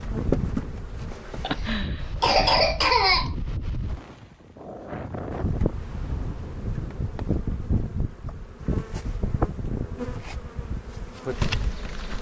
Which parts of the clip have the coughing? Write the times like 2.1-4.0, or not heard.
1.4-3.4.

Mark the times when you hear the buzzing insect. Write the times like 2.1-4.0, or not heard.
0.0-1.6, 5.3-12.1.